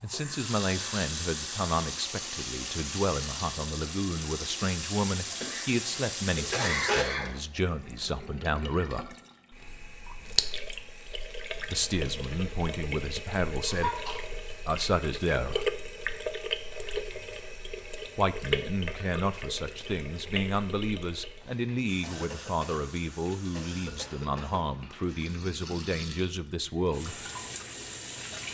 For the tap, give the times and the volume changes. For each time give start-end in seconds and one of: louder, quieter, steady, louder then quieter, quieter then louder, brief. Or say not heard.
0.1-28.4 quieter.